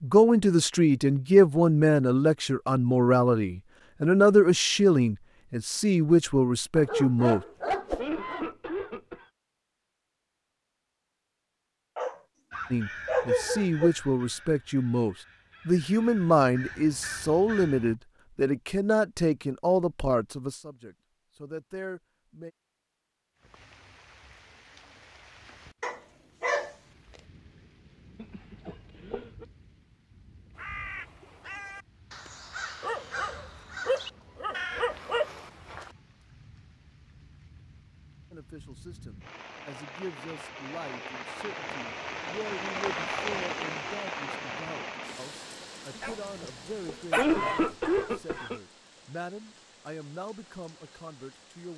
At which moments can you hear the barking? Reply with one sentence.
You can hear the barking from 6.8 to 8.4 s, from 11.9 to 13.9 s, from 25.8 to 27.2 s, from 32.8 to 35.5 s and from 46.0 to 47.7 s.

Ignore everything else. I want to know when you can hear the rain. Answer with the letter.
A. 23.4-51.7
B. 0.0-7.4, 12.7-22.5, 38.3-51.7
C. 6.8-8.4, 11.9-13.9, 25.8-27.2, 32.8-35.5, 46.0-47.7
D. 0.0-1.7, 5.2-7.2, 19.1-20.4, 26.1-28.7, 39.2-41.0
A.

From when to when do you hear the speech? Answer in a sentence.
You can hear the speech from 0.0 to 7.4 s, from 12.7 to 22.5 s and from 38.3 to 51.7 s.